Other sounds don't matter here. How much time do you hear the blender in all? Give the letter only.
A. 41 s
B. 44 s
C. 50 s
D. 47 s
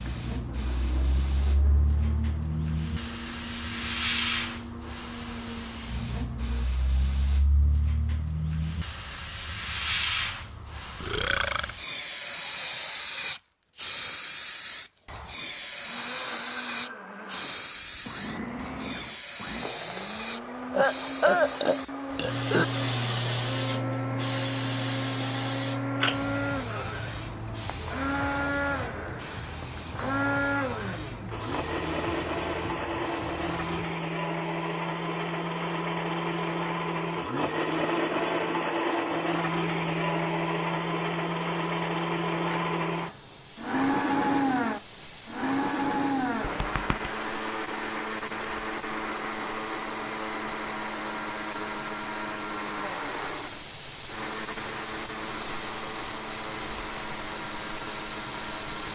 C.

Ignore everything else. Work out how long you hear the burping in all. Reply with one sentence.
You can hear the burping for 3 seconds altogether.